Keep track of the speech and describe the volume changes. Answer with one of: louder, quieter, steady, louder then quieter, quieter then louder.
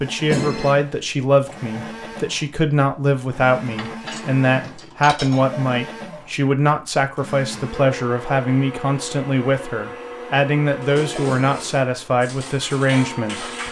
steady.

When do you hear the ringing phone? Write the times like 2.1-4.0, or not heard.
0.3-0.8, 11.2-11.7.